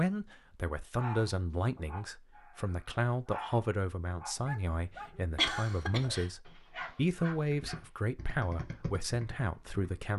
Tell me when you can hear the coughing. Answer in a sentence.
You can hear the coughing from 5.3 to 6.3 s.